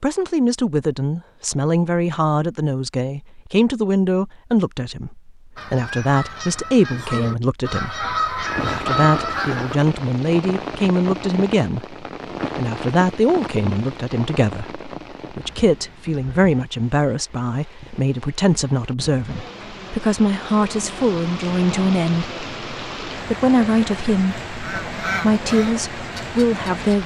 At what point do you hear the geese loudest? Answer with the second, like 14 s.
9 s.